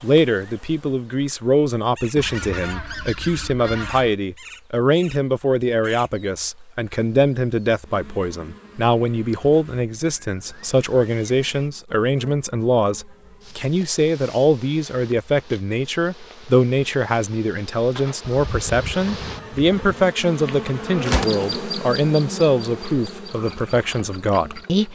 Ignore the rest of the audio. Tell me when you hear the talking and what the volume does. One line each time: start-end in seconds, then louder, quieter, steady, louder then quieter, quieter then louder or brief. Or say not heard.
0.0-24.9 steady.